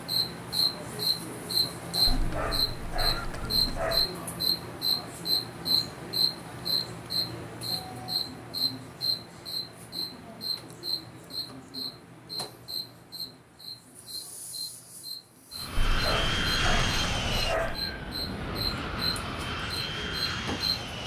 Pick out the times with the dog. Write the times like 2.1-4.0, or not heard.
2.0-4.0, 15.9-17.8.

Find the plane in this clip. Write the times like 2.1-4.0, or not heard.
15.6-21.0.